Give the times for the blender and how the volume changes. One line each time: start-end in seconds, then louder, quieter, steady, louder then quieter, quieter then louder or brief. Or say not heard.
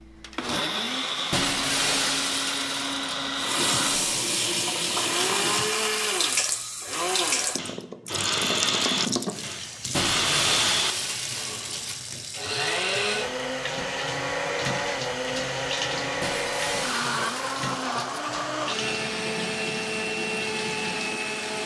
0.0-21.6 steady.